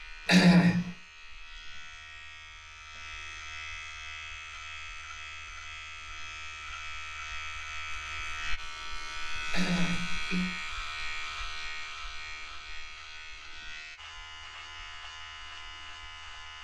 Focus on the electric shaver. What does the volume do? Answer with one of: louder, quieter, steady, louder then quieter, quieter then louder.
louder then quieter.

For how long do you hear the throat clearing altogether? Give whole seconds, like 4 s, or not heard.
2 s.